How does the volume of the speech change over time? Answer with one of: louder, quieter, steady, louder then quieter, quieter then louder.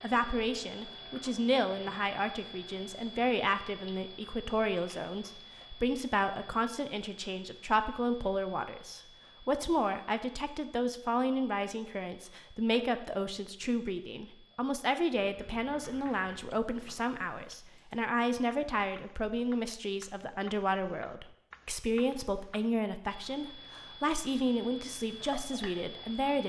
steady.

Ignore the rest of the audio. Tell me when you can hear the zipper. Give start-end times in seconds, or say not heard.
not heard.